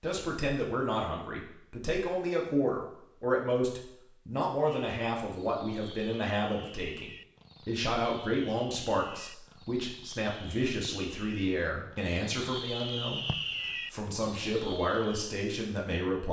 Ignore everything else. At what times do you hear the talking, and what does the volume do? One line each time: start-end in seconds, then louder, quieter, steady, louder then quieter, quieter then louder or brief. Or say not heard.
0.0-16.2 steady.